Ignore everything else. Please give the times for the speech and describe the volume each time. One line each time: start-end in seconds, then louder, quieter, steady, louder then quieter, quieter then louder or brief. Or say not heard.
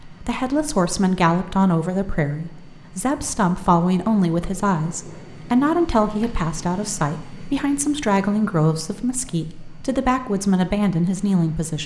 0.0-11.8 steady.